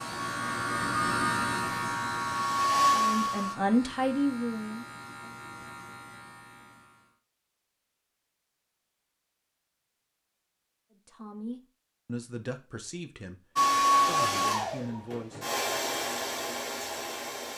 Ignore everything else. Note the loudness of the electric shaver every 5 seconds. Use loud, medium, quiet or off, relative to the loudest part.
loud, quiet, off, off.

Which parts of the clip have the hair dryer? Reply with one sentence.
You can hear the hair dryer from 0.0 to 3.5 s and from 13.6 to 17.5 s.